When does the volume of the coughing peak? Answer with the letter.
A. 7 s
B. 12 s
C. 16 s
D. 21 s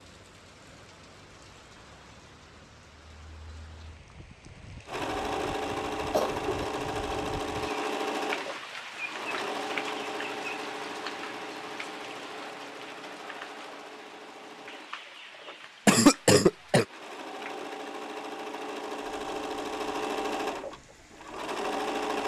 C.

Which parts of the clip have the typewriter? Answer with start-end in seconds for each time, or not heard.
not heard.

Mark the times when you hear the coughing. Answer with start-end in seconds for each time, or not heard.
5.7-6.7, 15.8-16.9.